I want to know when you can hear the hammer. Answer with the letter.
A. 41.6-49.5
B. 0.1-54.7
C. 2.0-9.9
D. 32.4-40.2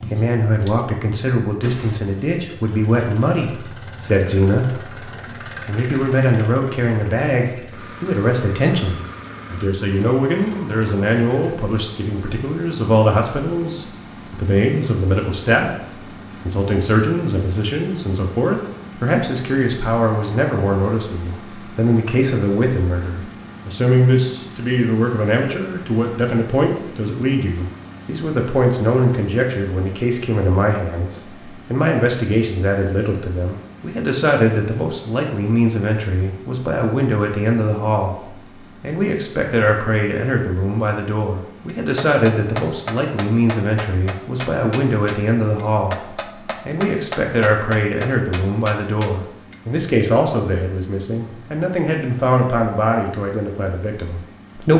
A.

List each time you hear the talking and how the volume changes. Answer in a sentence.
The talking can be heard from 0.1 to 54.7 s, at a steady volume.